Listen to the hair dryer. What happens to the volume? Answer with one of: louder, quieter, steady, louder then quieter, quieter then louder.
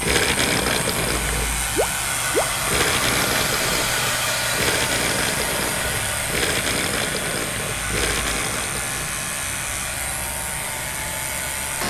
quieter.